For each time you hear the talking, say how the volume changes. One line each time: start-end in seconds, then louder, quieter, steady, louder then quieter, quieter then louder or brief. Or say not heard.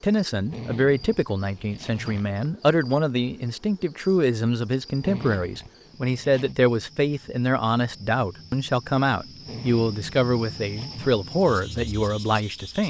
0.0-12.8 steady.